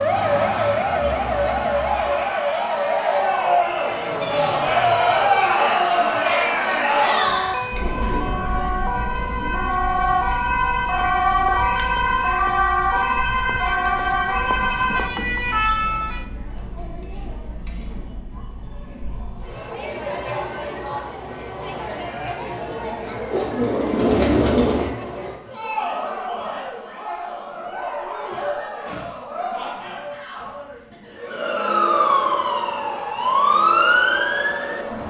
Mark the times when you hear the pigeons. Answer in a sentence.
You can hear the pigeons from 23.3 to 24.9 s.